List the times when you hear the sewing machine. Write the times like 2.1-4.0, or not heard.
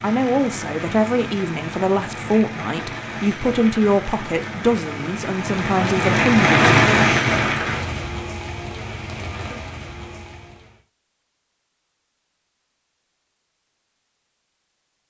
not heard.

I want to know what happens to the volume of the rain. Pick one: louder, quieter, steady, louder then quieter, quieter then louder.
louder then quieter.